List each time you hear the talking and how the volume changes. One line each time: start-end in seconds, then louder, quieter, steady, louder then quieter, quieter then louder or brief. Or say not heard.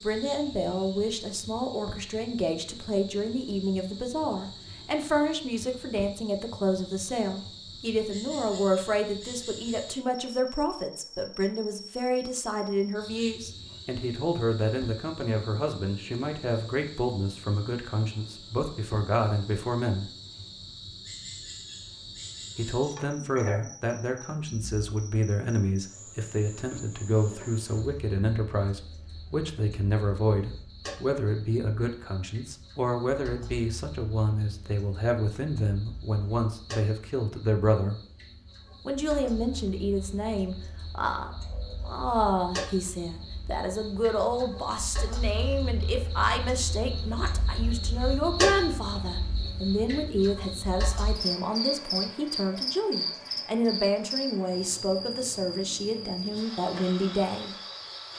0.0-20.1 steady
22.6-38.0 steady
38.9-57.5 steady.